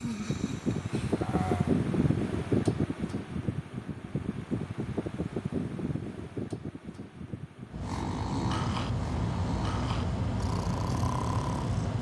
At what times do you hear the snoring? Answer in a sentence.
The snoring can be heard from 0.0 to 1.8 s and from 7.8 to 11.9 s.